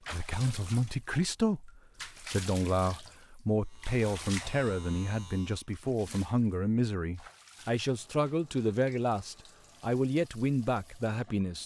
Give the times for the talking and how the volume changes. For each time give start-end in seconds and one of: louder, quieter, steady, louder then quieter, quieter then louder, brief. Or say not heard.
0.1-11.6 steady.